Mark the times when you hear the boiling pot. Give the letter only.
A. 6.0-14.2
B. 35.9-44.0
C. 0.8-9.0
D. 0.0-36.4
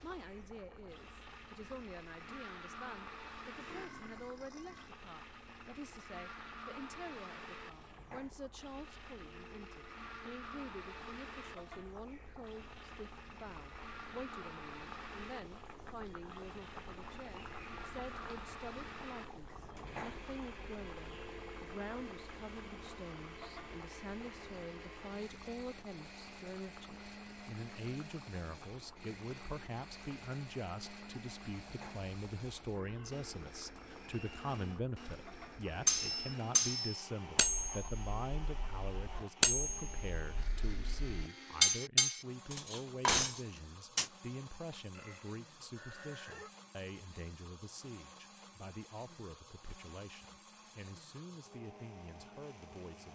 D.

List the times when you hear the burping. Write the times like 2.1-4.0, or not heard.
3.6-5.0, 32.6-33.2, 44.9-46.5.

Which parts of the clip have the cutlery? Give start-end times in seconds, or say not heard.
35.9-44.0.